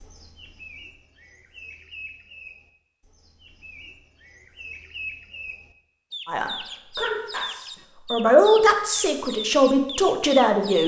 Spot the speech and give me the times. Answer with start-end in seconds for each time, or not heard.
6.2-10.8.